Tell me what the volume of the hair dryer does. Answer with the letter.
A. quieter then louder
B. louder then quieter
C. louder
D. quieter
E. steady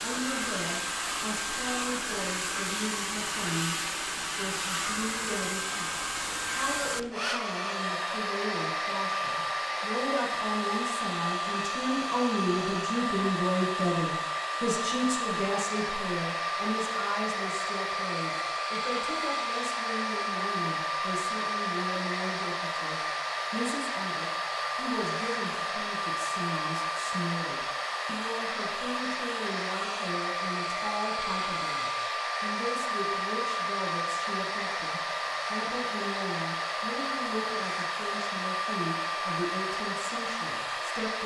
E.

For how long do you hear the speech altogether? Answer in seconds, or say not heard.
41 s.